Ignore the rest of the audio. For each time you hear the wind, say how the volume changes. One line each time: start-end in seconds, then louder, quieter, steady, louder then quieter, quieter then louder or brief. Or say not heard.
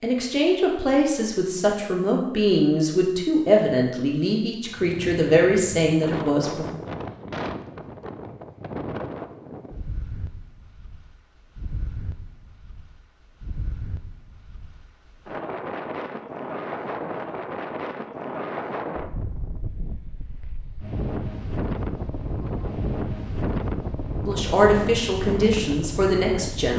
4.7-26.7 quieter then louder.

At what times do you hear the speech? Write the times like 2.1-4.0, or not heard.
0.0-6.7, 24.2-26.7.